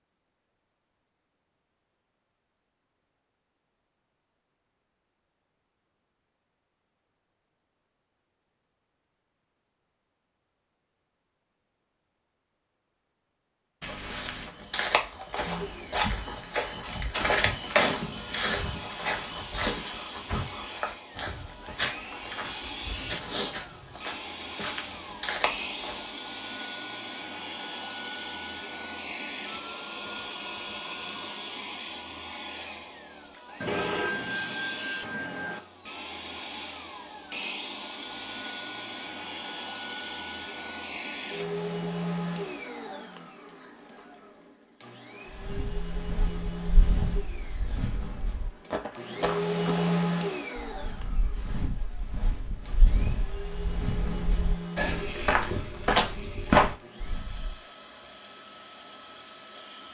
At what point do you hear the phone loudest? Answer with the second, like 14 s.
34 s.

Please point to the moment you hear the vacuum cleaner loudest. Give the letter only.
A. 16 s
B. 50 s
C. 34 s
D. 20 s
B.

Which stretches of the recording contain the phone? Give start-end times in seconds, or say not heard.
13.8-14.6, 33.6-35.6.